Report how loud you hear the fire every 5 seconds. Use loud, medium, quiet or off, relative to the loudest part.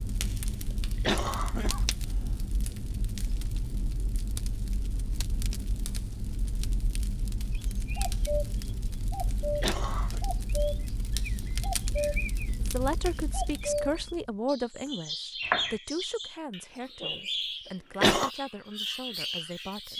loud, loud, loud, off.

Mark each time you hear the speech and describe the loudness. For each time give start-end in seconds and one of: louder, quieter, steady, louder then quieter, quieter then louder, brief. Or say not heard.
12.6-19.9 quieter.